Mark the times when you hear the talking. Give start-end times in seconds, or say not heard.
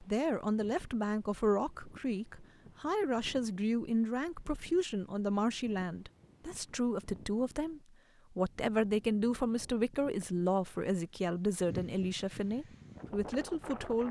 0.0-14.0.